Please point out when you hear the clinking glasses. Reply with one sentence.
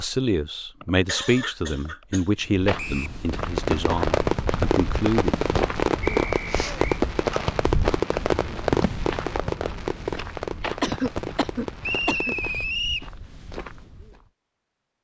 The clinking glasses can't be heard in this clip.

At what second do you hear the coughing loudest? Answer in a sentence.
The loudest moment of the coughing is at 11 seconds.